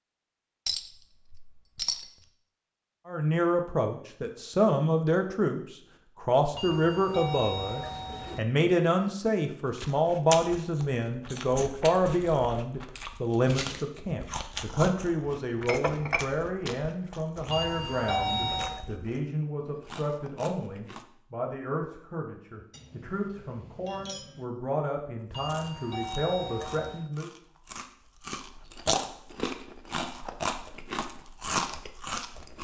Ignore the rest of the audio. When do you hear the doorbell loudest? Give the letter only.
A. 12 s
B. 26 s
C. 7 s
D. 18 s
D.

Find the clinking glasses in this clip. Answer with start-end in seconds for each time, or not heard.
0.7-2.1, 15.6-16.3, 22.7-24.4.